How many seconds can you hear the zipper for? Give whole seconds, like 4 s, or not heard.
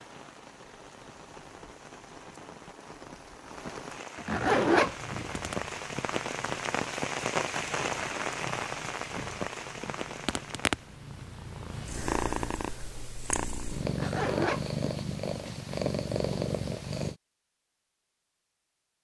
2 s.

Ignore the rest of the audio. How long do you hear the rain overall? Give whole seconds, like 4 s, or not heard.
11 s.